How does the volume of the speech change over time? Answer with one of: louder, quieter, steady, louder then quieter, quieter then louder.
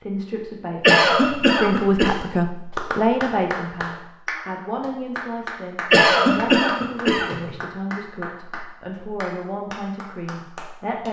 quieter.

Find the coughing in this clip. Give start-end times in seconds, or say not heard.
0.8-2.1, 5.9-7.5.